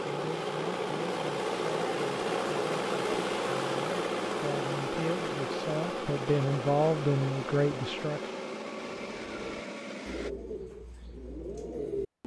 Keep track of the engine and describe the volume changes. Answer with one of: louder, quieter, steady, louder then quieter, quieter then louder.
quieter.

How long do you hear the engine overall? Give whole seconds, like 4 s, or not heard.
10 s.